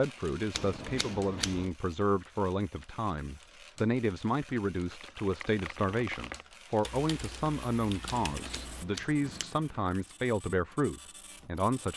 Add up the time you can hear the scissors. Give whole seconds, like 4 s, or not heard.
2 s.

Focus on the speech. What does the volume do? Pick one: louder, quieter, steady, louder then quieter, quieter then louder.
steady.